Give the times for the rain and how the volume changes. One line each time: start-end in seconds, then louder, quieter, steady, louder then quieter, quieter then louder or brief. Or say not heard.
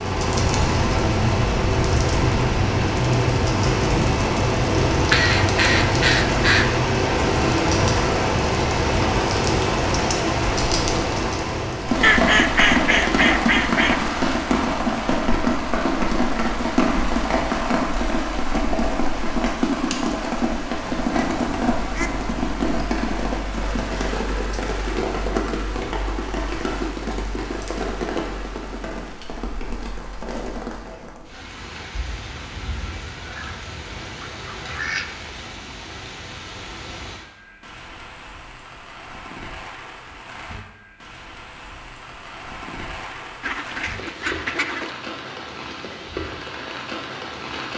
0.0-47.7 quieter.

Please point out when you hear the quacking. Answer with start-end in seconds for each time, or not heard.
4.9-6.7, 12.0-13.9, 20.8-22.9, 33.0-35.1, 43.4-44.9.